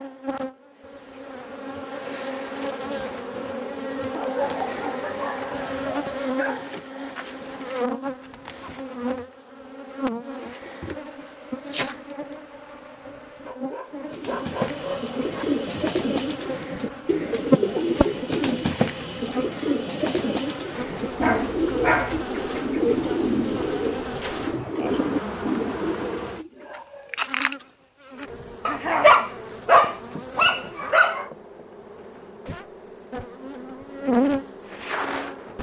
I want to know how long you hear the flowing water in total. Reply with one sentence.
You can't hear the flowing water here.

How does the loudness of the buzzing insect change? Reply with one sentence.
The loudness of the buzzing insect stays about the same.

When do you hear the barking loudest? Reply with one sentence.
The volume of the barking peaks at 29 seconds.